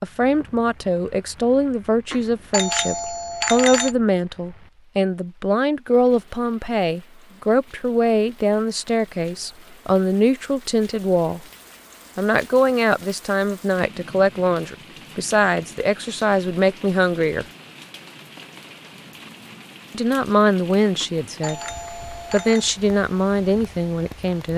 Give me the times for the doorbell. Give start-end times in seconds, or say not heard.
2.1-4.0, 21.0-22.7.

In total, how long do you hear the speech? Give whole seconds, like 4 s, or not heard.
21 s.